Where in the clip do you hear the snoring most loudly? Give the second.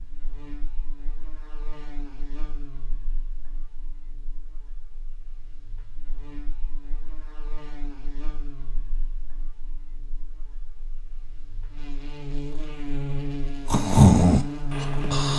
14 s.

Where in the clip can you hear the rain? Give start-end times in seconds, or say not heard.
not heard.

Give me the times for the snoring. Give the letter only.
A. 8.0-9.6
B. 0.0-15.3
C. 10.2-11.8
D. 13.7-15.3
D.